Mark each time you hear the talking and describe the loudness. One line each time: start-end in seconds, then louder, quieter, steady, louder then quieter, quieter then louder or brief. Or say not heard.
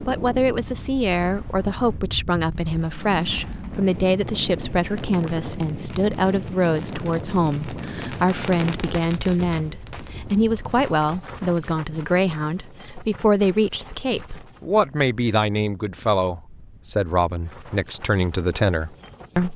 0.1-19.5 steady.